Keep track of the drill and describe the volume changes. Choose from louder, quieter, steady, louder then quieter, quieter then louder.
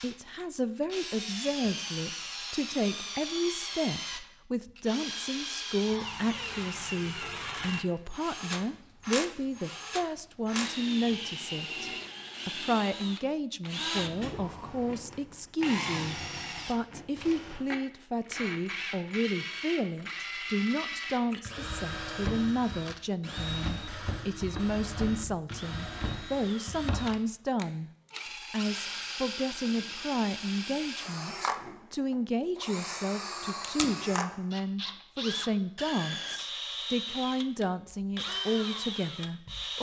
steady.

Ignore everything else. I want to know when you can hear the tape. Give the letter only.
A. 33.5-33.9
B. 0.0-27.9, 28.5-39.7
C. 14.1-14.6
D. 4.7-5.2
A.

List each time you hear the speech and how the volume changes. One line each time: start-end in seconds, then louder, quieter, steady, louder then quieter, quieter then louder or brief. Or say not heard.
0.0-27.9 steady
28.5-39.7 steady.